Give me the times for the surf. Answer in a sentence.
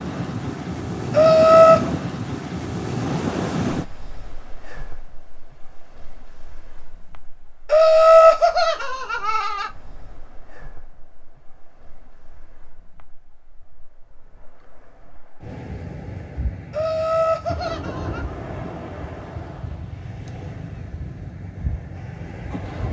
The surf can be heard from 0.0 to 22.8 s.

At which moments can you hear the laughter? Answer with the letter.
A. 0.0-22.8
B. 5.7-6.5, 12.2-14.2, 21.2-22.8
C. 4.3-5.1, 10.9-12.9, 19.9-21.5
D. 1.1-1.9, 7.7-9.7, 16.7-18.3
D.